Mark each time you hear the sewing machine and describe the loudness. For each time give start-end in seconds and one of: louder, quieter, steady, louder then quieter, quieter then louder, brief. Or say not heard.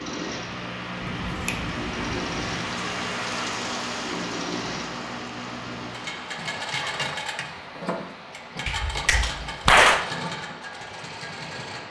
0.0-11.8 steady.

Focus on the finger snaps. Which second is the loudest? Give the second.
10 s.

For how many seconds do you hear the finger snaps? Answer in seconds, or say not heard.
3 s.